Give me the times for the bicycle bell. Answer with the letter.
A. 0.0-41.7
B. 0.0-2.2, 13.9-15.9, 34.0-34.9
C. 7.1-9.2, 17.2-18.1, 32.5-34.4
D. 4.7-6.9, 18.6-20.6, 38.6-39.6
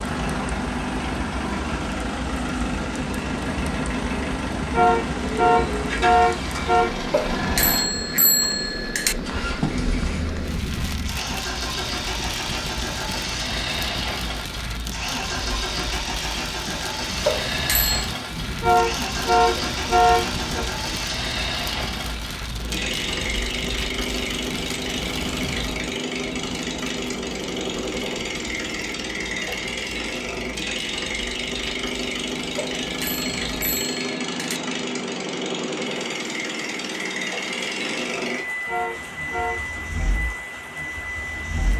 C.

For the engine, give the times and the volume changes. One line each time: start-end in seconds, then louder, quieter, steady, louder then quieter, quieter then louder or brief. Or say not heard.
0.0-41.7 steady.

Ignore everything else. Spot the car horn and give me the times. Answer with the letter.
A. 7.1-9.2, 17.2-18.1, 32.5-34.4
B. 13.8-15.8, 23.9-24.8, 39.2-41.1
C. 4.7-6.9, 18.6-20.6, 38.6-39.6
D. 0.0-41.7
C.